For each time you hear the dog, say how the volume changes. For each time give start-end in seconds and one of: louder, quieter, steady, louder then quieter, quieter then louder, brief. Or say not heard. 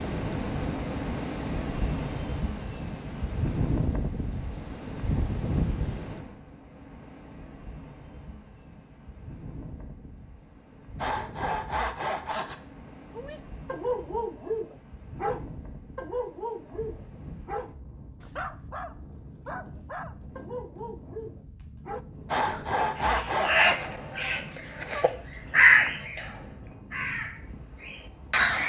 13.2-22.1 quieter.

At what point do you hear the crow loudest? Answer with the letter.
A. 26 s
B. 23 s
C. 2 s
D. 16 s
A.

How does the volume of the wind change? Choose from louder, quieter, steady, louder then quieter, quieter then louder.
quieter.